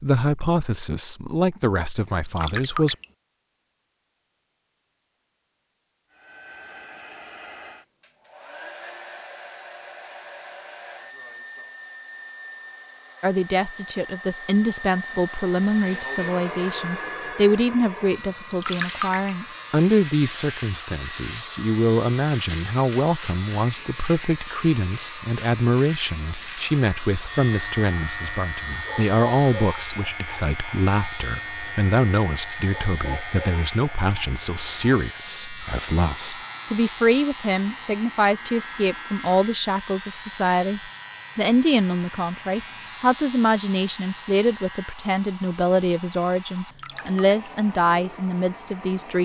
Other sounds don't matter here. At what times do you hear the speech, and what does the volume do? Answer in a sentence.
You can hear the speech briefly from 0.0 to 3.0 s; and from 13.2 to 49.2 s, at a steady volume.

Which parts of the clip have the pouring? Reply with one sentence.
You can hear the pouring from 2.1 to 3.0 s, from 18.4 to 19.3 s and from 46.5 to 47.4 s.